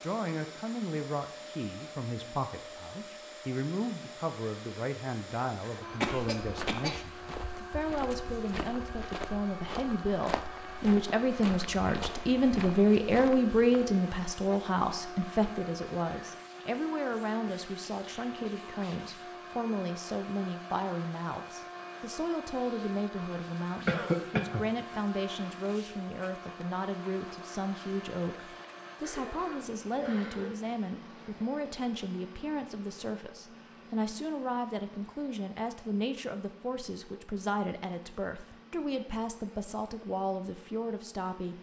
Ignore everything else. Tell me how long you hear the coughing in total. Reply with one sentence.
You can hear the coughing for 4 seconds altogether.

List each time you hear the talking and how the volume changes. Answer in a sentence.
The talking can be heard from 0.0 to 41.5 s, getting louder then quieter.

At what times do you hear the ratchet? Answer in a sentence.
The ratchet can't be heard in this clip.